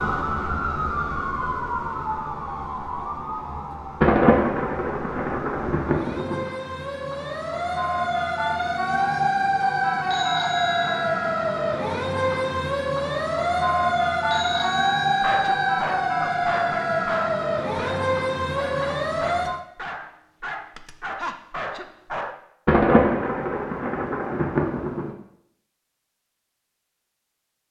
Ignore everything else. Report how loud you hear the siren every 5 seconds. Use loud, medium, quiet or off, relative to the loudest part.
medium, loud, loud, loud, off, off.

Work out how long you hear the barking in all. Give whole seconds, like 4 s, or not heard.
7 s.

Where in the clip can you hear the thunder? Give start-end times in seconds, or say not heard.
4.0-6.5, 22.6-25.1.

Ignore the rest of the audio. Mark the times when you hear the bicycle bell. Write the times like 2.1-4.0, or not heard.
10.1-11.1, 14.2-15.8.